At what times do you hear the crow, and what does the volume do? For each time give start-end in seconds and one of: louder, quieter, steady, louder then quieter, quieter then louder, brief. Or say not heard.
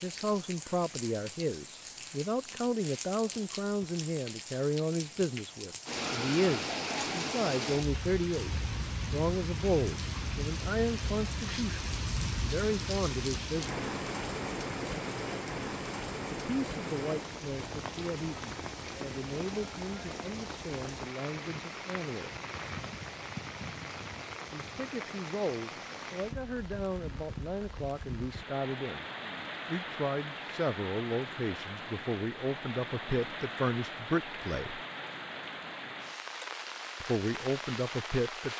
not heard.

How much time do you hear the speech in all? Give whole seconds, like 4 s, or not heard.
31 s.